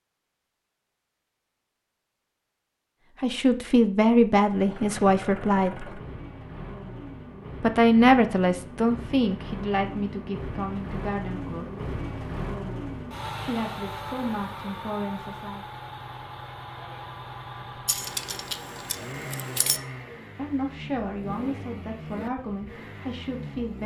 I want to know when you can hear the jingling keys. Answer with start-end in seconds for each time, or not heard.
17.9-19.8.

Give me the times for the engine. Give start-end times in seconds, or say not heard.
4.5-23.8.